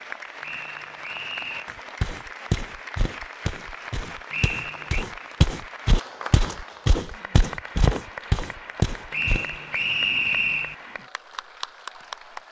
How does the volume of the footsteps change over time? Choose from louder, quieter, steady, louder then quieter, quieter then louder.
quieter then louder.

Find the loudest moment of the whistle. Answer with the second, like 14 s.
10 s.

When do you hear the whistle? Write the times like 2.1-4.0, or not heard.
0.4-1.6, 4.3-5.0, 9.1-10.8.